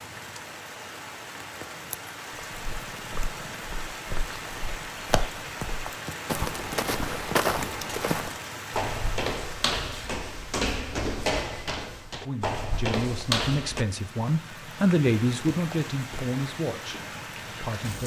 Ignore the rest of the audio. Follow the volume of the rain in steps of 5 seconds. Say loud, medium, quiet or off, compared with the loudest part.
loud, loud, medium, loud.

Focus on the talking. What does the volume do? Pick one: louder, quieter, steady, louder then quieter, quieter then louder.
louder then quieter.